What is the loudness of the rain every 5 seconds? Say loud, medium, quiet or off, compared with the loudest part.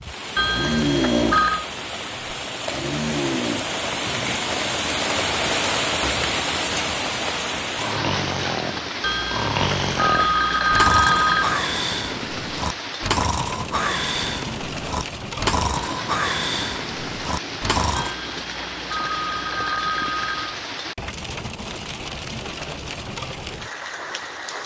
loud, loud, medium, medium, medium.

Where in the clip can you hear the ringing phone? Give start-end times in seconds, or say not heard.
0.3-1.6, 9.0-11.6, 17.9-20.6.